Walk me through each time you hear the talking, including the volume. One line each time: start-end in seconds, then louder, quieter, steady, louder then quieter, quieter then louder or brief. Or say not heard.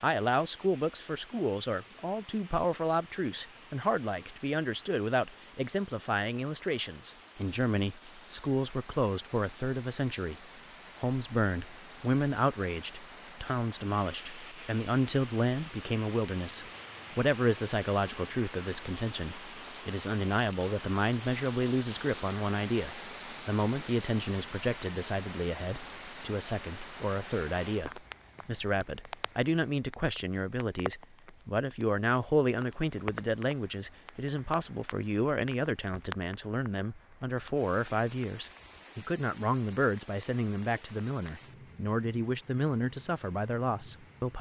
0.0-10.3 steady
11.0-44.3 steady.